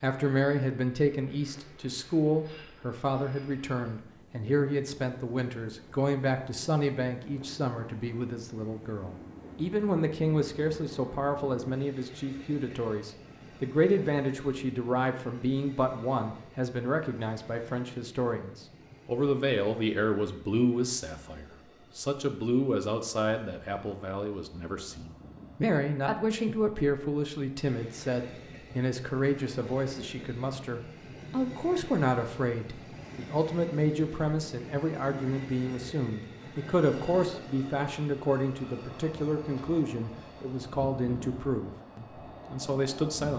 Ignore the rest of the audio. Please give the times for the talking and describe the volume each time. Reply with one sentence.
The talking can be heard from 0.0 to 43.3 s, at a steady volume.